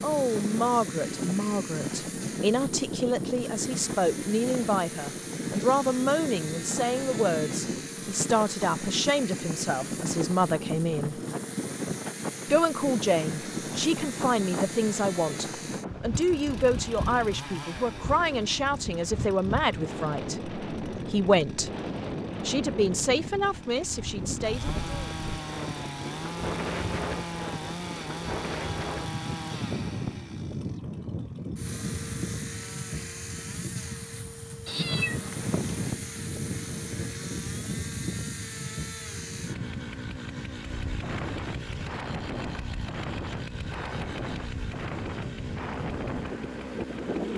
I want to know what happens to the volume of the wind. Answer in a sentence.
The loudness of the wind stays about the same.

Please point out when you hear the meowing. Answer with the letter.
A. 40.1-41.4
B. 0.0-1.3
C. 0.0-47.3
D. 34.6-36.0
D.